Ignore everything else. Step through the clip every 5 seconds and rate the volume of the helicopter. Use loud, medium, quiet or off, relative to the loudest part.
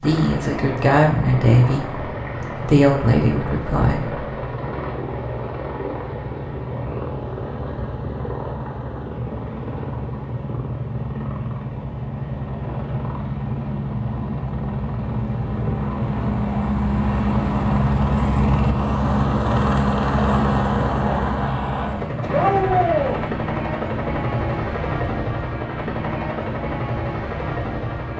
medium, medium, medium, loud, loud, medium.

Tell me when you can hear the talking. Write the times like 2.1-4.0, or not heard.
0.0-4.2.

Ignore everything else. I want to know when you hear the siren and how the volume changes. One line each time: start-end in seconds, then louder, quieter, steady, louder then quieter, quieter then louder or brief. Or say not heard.
not heard.